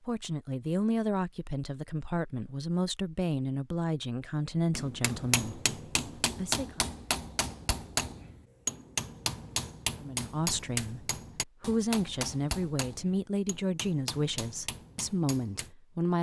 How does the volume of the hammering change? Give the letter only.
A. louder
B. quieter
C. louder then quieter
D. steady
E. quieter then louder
B.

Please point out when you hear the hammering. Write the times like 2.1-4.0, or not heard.
4.8-15.7.